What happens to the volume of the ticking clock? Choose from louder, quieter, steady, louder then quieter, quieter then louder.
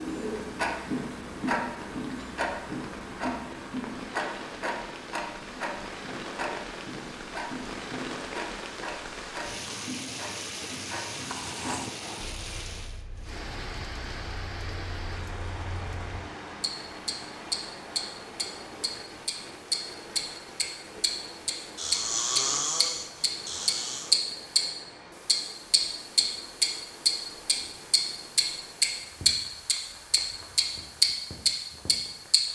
quieter then louder.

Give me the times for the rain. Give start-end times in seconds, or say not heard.
0.0-32.5.